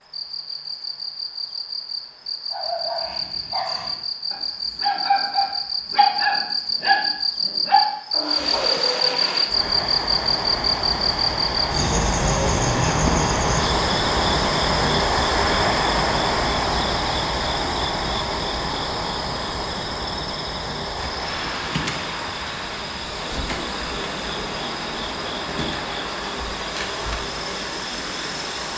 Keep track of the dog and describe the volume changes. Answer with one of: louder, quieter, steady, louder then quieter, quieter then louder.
louder then quieter.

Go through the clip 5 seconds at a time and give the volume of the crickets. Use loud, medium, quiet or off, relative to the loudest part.
medium, loud, loud, medium, medium, medium.